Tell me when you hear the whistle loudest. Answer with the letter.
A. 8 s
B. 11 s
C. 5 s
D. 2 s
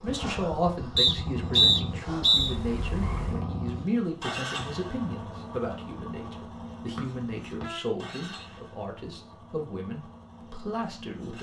D.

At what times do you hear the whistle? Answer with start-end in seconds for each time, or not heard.
0.9-2.5, 7.0-8.4.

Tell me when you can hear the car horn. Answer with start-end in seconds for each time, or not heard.
2.4-3.5, 7.6-8.6.